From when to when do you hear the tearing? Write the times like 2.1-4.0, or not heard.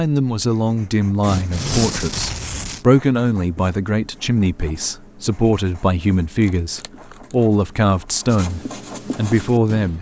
1.2-2.9, 6.4-7.3.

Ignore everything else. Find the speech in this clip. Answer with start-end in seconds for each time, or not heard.
0.0-9.9.